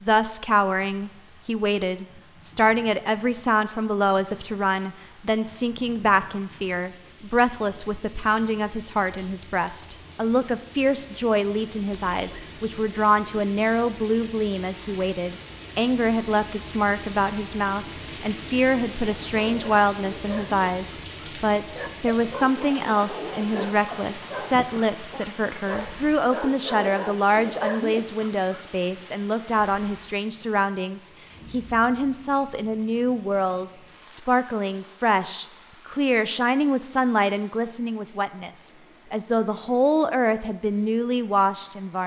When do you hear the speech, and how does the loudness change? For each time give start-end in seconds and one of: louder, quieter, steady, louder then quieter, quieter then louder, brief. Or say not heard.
0.0-42.0 steady.